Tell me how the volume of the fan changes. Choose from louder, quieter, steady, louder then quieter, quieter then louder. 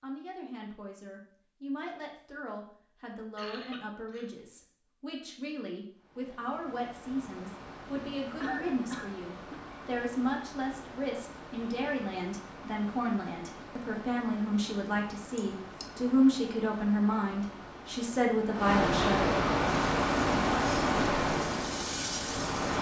louder.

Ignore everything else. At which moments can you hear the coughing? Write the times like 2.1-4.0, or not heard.
3.4-4.3, 8.0-9.6, 15.3-15.8.